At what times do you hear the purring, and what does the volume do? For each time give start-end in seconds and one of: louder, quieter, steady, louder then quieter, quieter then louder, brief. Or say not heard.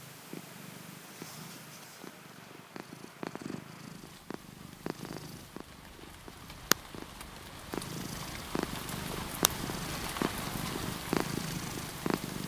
0.0-12.4 louder.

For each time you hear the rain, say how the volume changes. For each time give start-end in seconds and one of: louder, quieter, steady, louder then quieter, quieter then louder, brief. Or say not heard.
0.0-12.4 louder.